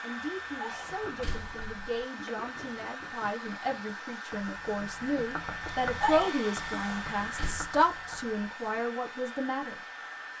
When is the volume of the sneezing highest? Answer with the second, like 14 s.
6 s.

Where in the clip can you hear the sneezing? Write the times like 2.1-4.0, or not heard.
0.1-1.1, 5.6-6.5.